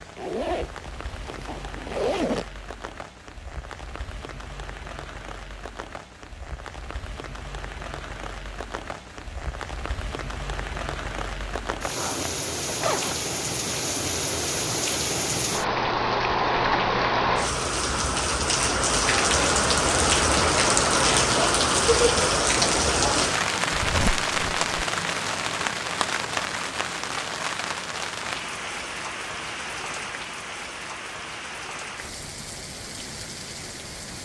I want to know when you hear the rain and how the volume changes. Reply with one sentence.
You can hear the rain from 0.0 to 34.2 s, getting louder then quieter.